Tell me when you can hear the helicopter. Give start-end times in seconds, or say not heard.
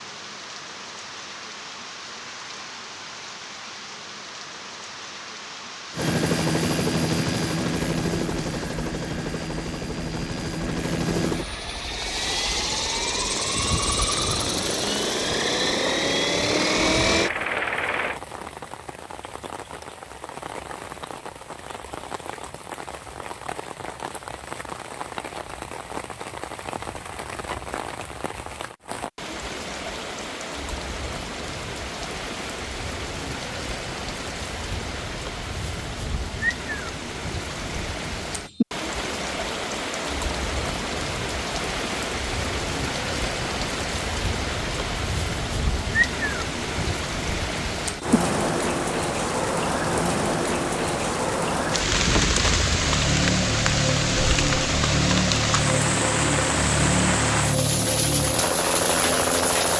6.0-18.2, 51.8-59.7.